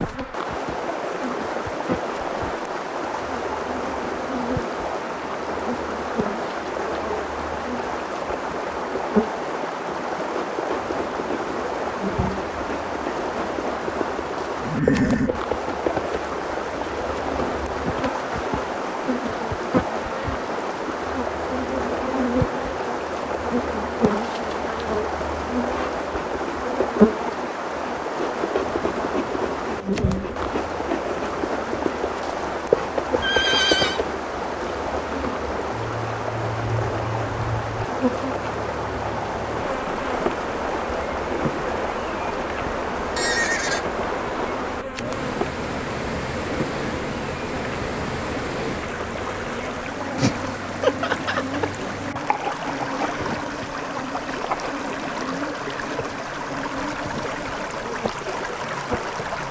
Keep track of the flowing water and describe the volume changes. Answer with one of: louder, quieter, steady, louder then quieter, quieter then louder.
steady.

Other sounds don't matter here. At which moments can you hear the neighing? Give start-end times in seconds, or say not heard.
14.6-15.3, 33.2-34.0, 43.0-43.9.